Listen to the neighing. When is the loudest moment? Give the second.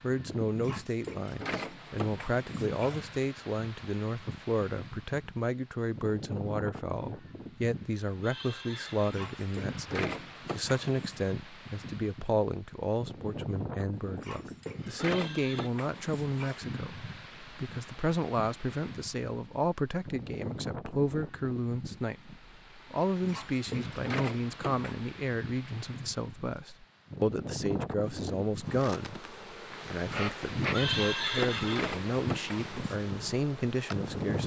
31 s.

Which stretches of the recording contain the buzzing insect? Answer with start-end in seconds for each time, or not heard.
28.6-34.4.